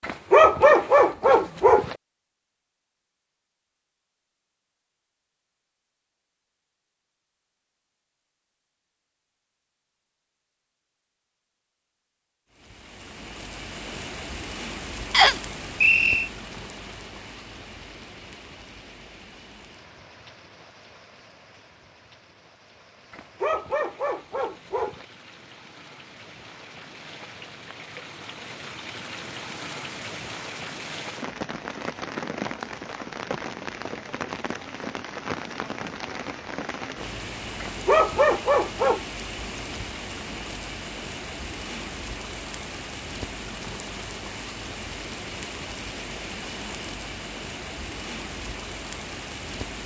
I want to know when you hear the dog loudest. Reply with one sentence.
The volume of the dog peaks at 1 second.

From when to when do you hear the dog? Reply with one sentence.
The dog can be heard from 0.0 to 1.9 s, from 23.1 to 25.1 s and from 37.6 to 39.0 s.